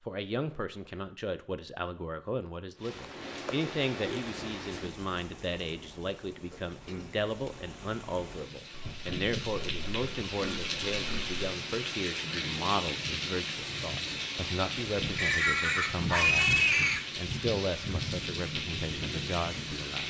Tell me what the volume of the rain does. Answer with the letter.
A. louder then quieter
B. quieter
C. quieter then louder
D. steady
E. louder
E.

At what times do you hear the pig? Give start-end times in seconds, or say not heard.
3.0-4.9, 8.7-11.4, 15.2-17.0.